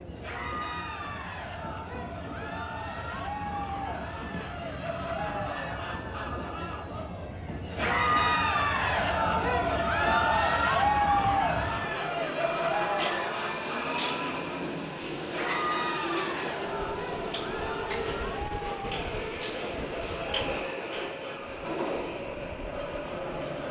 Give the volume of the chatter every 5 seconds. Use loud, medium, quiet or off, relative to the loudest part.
medium, loud, loud, medium, quiet.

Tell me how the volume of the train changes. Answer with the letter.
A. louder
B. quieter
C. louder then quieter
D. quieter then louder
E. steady
A.